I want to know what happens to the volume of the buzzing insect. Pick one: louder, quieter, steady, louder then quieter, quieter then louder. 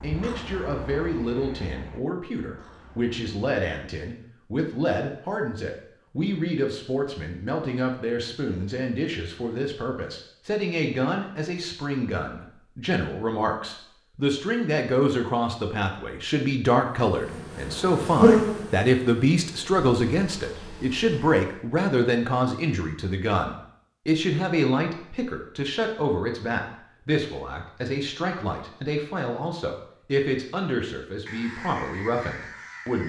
louder then quieter.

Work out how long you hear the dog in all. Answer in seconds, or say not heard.
not heard.